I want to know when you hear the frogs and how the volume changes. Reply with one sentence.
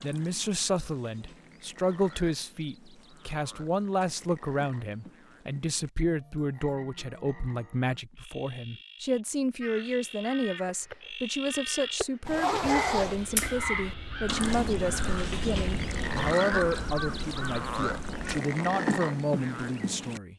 The frogs can be heard from 0.0 to 20.2 s, getting louder.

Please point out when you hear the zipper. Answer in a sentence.
The zipper can be heard from 12.2 to 13.2 s.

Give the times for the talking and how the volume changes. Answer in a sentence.
The talking can be heard from 0.0 to 20.3 s, at a steady volume.